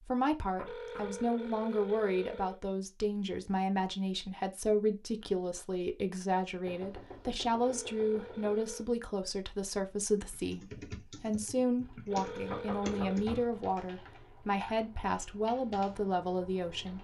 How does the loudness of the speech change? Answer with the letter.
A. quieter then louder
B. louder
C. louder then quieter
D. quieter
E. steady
E.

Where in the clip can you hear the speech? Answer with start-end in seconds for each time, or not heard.
0.1-16.9.